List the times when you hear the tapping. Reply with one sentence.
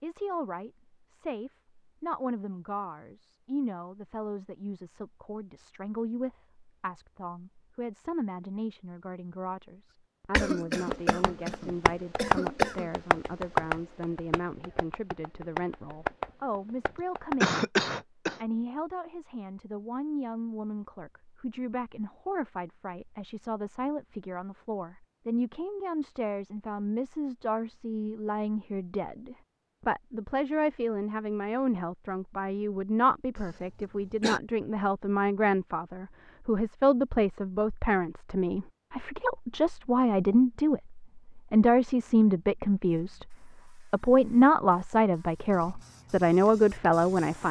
The tapping can be heard from 10.3 to 17.5 s.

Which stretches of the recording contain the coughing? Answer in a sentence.
You can hear the coughing from 10.3 to 12.9 s, from 17.4 to 18.4 s and from 33.4 to 34.4 s.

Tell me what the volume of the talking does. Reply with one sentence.
The loudness of the talking goes up.